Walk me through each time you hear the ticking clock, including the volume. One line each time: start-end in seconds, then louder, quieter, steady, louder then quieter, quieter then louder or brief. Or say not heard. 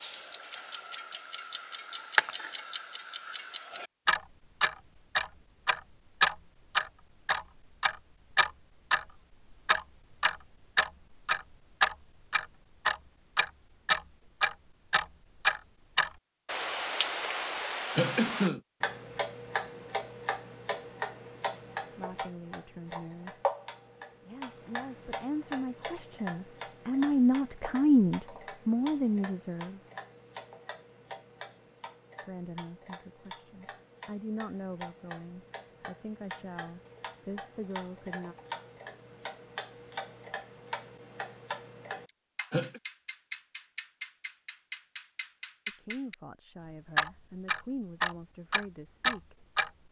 0.0-49.7 quieter then louder.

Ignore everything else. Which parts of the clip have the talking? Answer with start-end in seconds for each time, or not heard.
21.9-23.4, 24.2-29.8, 32.2-38.4, 45.6-49.4.